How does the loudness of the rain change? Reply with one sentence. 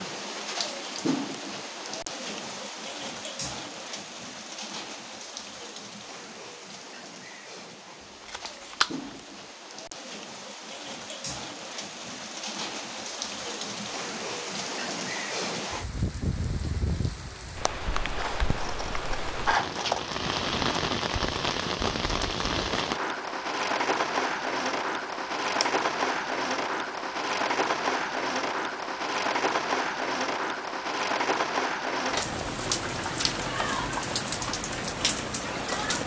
The loudness of the rain goes up.